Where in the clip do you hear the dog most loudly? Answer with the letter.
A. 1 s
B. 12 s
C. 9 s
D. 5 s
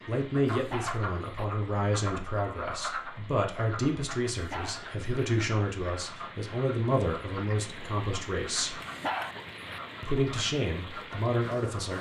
C.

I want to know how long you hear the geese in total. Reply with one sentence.
You can't hear the geese here.